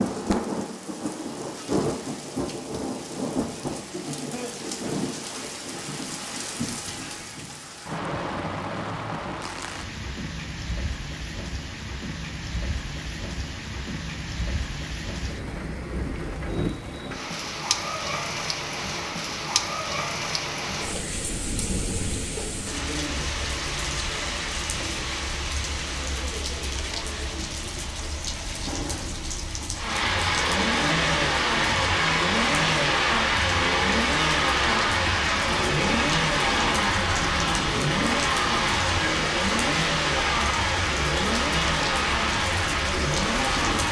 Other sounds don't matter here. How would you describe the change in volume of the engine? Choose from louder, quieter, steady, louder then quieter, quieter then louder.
steady.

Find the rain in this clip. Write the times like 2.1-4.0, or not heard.
0.0-43.8.